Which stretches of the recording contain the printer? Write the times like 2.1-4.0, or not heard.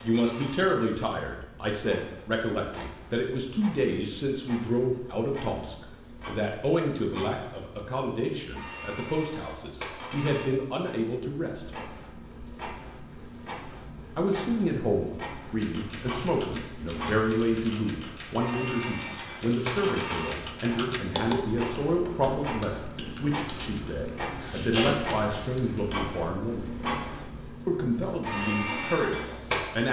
0.0-29.8.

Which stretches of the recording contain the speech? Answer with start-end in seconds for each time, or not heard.
0.0-11.7, 14.2-26.7, 27.6-29.8.